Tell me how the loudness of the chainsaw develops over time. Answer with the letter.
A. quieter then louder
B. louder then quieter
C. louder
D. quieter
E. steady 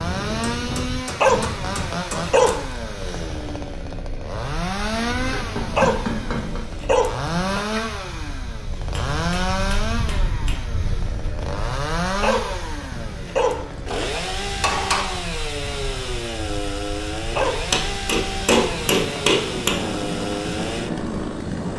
E.